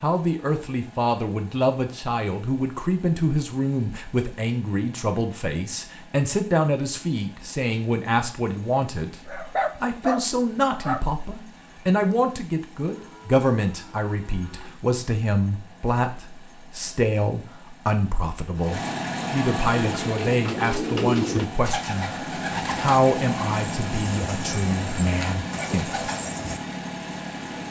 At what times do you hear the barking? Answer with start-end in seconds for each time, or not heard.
9.2-11.1.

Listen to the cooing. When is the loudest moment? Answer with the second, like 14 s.
21 s.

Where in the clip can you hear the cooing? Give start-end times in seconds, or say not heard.
19.8-26.6.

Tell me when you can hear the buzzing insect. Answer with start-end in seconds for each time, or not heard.
not heard.